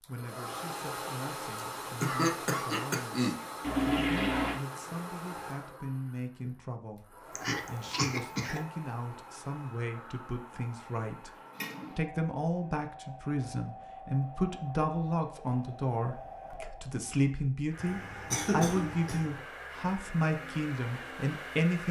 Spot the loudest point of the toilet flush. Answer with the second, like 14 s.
4 s.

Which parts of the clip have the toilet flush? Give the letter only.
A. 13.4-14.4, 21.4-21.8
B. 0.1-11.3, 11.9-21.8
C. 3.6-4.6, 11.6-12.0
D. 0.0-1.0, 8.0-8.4
C.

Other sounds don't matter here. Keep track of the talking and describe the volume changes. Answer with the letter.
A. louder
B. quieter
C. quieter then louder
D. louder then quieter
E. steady
A.